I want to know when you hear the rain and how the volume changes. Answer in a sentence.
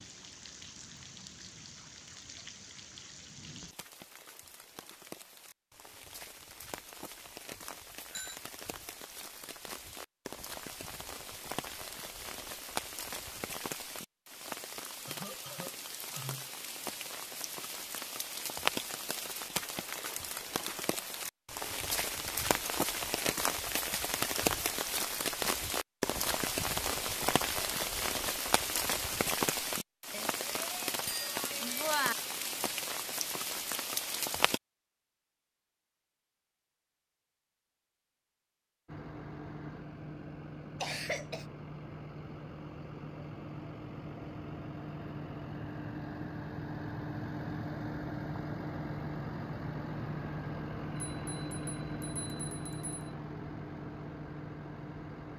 You can hear the rain from 0.0 to 34.6 s, getting louder.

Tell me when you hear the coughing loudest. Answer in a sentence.
The volume of the coughing peaks at 41 seconds.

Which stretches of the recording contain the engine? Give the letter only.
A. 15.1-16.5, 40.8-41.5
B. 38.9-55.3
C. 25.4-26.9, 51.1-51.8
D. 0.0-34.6
B.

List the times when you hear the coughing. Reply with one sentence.
The coughing can be heard from 15.1 to 16.5 s and from 40.8 to 41.5 s.